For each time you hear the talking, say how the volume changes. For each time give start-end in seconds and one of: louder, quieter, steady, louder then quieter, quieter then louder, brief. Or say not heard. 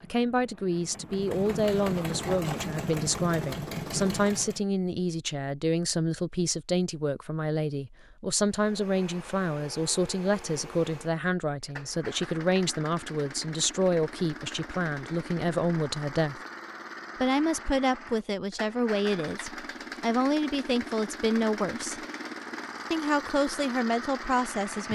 0.0-16.4 steady
17.2-22.0 quieter then louder
22.9-24.9 brief.